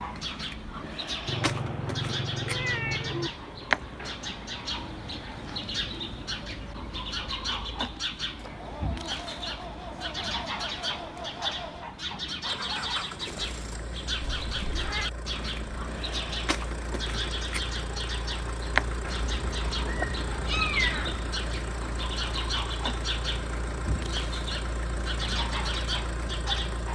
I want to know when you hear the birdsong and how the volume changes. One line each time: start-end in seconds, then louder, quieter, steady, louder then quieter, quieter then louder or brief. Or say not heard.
0.0-26.9 steady.